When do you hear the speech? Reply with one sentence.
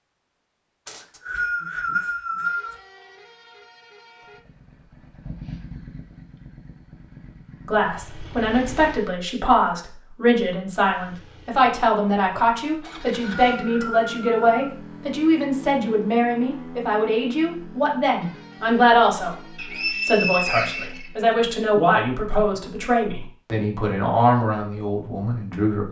You can hear the speech from 7.7 to 25.8 s.